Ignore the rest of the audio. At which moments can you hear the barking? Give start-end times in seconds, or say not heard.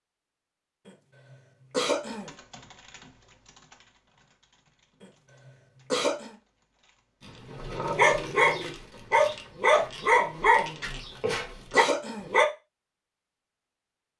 7.5-12.4.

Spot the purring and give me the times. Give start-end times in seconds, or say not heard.
not heard.